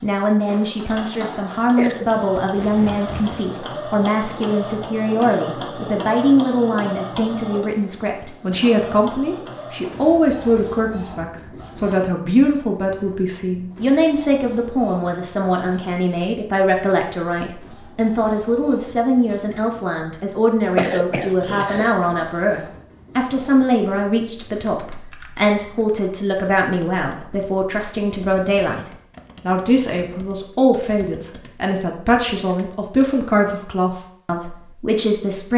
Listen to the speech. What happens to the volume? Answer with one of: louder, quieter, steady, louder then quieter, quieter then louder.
steady.